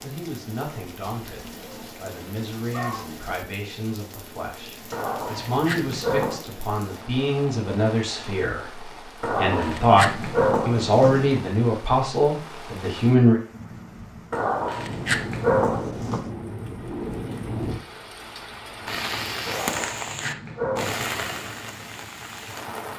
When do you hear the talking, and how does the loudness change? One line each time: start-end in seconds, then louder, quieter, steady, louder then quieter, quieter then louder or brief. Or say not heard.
0.0-13.4 louder.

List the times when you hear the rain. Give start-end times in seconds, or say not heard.
0.0-22.9.